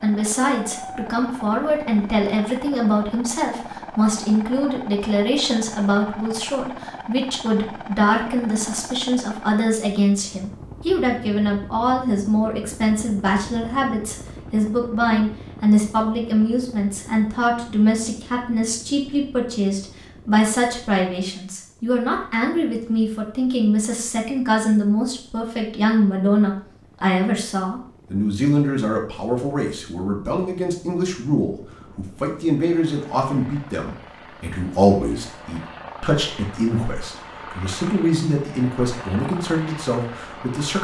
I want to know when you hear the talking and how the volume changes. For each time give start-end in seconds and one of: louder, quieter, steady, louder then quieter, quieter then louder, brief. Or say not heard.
0.0-40.7 steady.